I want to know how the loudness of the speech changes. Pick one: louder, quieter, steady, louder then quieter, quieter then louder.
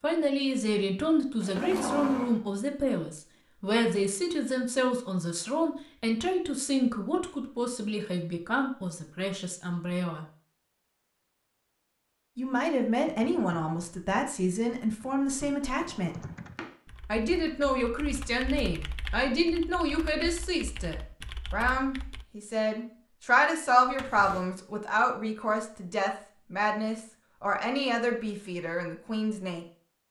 steady.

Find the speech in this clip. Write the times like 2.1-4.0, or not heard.
0.0-10.2, 12.3-16.2, 17.1-29.6.